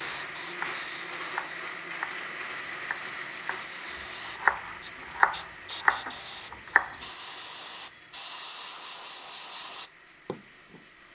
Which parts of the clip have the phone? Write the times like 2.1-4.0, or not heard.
2.4-3.8, 6.5-8.2.